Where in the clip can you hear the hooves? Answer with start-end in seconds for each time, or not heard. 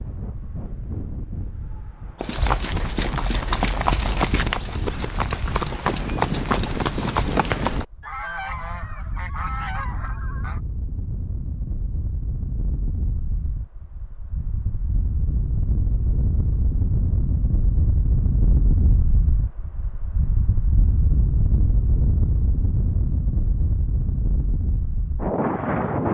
2.2-7.8.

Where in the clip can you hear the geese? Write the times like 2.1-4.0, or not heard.
8.0-10.6.